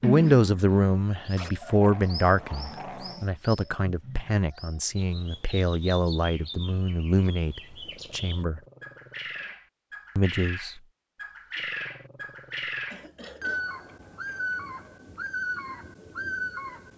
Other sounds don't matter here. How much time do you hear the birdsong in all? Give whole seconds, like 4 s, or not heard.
17 s.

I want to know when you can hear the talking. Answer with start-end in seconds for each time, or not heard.
0.0-8.6, 10.2-10.8.